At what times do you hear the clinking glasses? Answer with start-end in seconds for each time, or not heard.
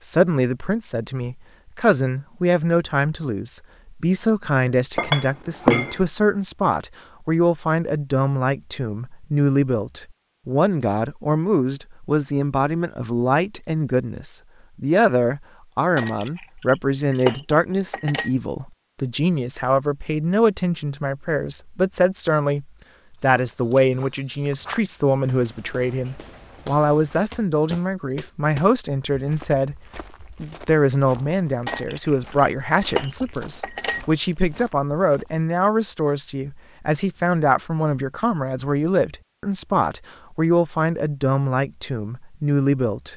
5.0-6.0, 15.9-18.3, 31.6-34.0.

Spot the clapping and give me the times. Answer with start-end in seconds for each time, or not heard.
not heard.